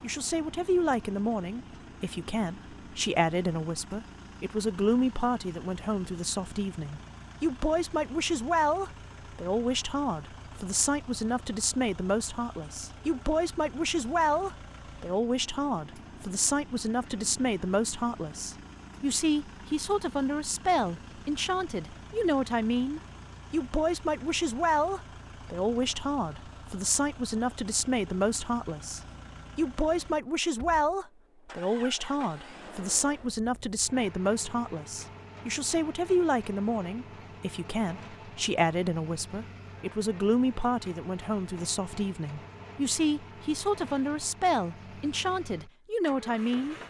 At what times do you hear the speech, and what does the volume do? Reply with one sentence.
You can hear the speech from 0.0 to 46.8 s, at a steady volume.